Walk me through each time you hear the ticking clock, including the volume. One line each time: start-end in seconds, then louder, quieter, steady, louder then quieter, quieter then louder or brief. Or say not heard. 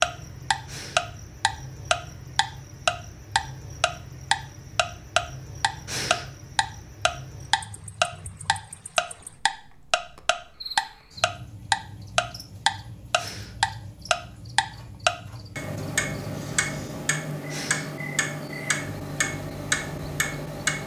0.0-20.8 quieter.